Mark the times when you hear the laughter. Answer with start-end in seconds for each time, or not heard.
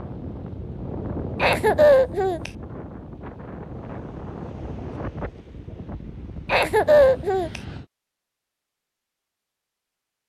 1.4-2.5, 6.5-7.6.